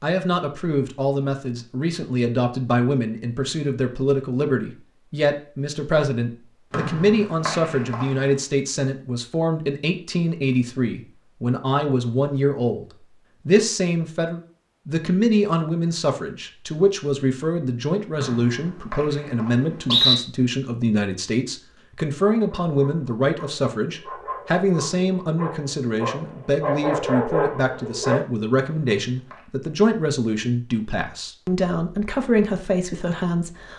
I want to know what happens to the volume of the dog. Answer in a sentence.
The loudness of the dog goes up.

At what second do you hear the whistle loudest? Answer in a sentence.
The loudest moment of the whistle is at 20 seconds.